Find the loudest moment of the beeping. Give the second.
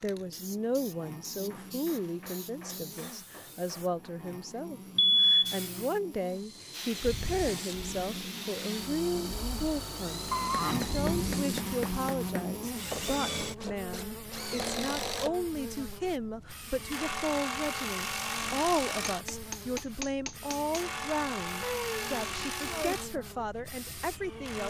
5 s.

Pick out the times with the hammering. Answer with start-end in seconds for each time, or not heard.
1.3-4.2, 10.6-12.3, 19.1-20.8.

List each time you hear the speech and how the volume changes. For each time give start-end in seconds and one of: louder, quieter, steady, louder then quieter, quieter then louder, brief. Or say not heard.
0.0-24.6 steady.